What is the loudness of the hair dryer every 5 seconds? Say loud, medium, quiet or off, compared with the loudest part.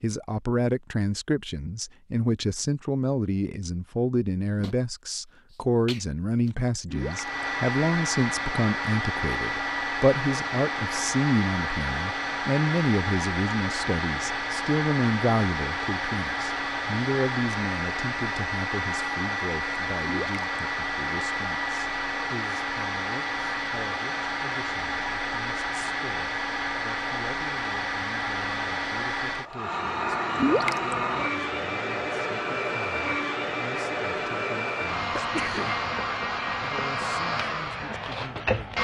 off, loud, loud, loud, loud, loud, loud, loud.